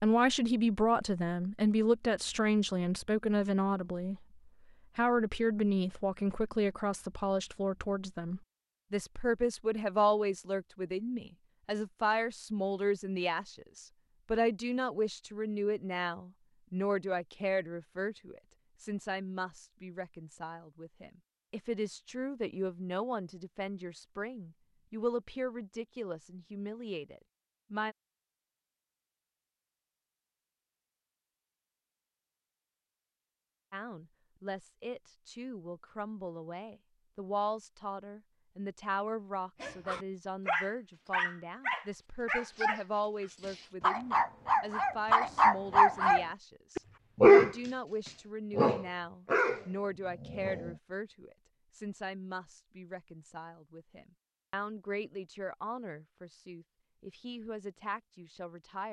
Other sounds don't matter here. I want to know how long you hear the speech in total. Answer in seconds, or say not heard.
52 s.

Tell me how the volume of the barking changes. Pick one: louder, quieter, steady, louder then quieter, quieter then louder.
louder then quieter.